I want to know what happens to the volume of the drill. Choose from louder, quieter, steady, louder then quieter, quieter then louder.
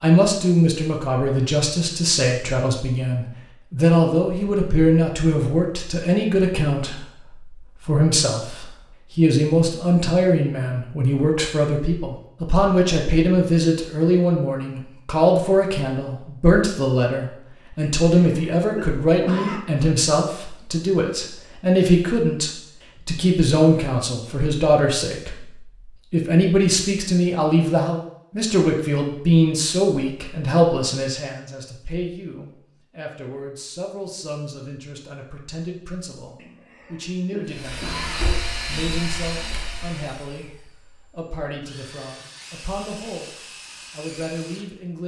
quieter then louder.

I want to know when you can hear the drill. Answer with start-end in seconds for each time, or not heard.
37.5-45.0.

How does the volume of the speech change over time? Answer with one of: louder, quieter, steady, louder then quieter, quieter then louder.
quieter.